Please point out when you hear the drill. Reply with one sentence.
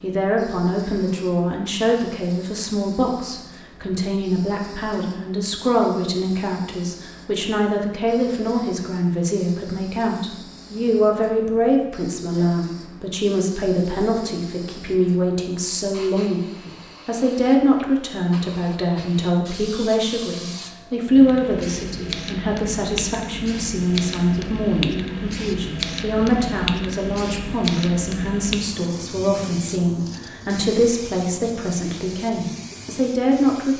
You can't hear the drill here.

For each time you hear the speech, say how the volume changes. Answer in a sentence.
The speech can be heard from 0.0 to 33.7 s, at a steady volume.